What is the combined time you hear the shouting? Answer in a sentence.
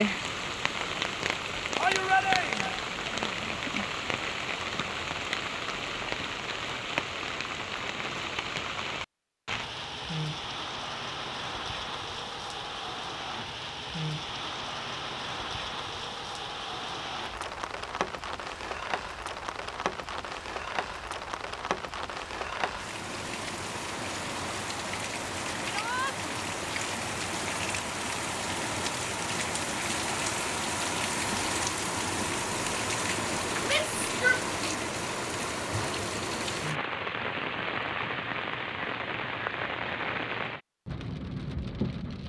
The shouting can be heard for 3 seconds in total.